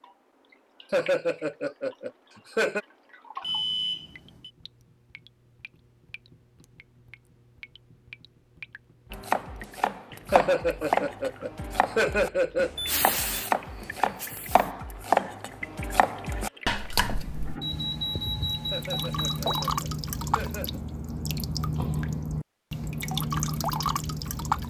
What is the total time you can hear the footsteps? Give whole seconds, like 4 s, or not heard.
not heard.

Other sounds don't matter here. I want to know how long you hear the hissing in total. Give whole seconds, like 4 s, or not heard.
2 s.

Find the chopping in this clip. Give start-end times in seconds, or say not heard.
9.1-17.6.